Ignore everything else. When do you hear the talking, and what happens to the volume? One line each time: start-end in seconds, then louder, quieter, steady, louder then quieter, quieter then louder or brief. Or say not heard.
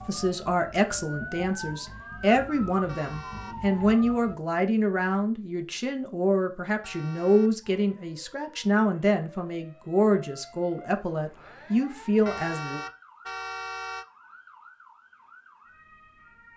0.1-12.8 steady.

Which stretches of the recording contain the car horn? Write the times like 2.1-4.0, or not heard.
2.9-3.5, 6.8-7.5, 12.2-14.1.